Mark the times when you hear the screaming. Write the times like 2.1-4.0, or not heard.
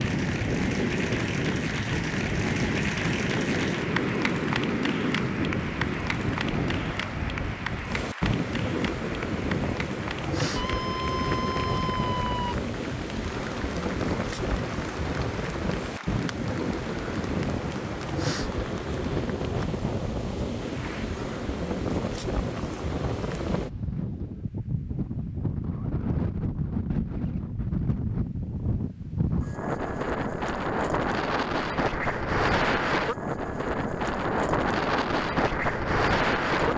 10.6-12.6.